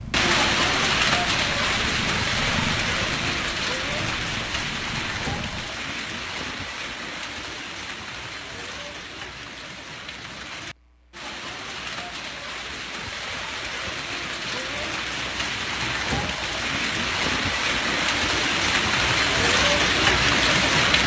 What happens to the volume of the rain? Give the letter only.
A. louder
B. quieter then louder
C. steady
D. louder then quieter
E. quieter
B.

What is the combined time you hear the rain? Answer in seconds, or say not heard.
21 s.